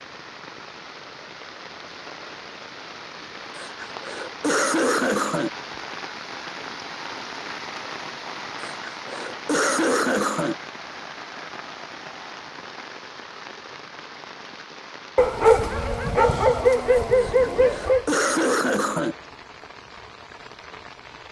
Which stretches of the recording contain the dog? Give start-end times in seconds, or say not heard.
15.2-18.1.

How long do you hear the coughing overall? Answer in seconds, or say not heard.
6 s.